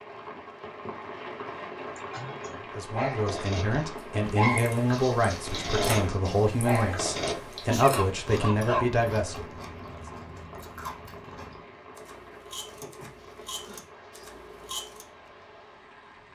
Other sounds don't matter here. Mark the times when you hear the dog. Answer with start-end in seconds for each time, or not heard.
2.9-8.9.